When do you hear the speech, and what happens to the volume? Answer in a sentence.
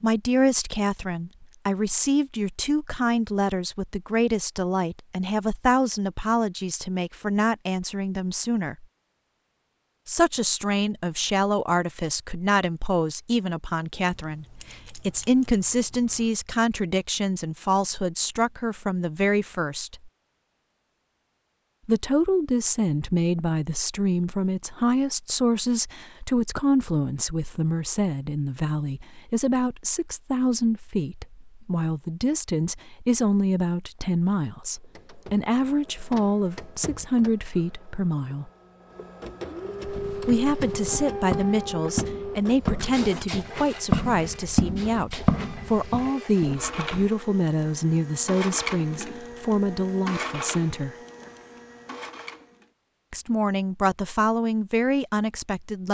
You can hear the speech from 0.0 to 8.8 s, at a steady volume; from 10.1 to 20.1 s, at a steady volume; from 21.9 to 38.5 s, at a steady volume; from 40.2 to 51.0 s, at a steady volume; and briefly from 53.1 to 55.8 s.